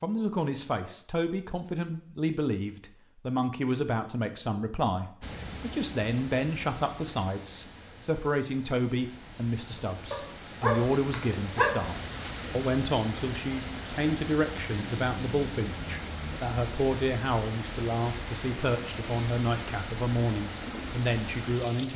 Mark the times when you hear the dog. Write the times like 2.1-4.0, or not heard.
10.1-11.8.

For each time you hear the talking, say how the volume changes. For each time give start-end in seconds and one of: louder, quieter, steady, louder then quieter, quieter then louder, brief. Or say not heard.
0.0-21.9 steady.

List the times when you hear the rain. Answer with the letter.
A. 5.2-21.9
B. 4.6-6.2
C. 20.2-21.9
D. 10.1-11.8
A.